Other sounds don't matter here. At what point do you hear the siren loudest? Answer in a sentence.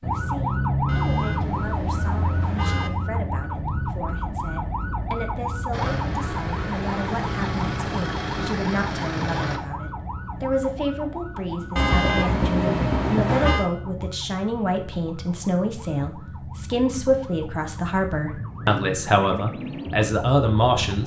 The volume of the siren peaks at 1 second.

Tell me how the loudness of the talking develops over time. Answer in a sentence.
The loudness of the talking goes up.